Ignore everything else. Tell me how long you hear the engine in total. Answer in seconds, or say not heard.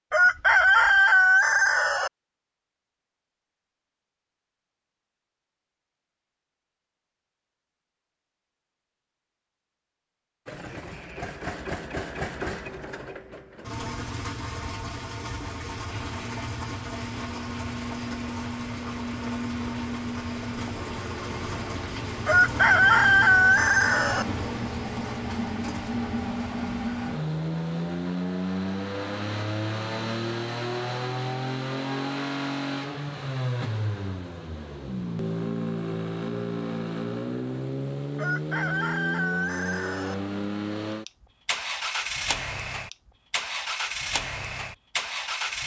35 s.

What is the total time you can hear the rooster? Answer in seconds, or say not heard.
6 s.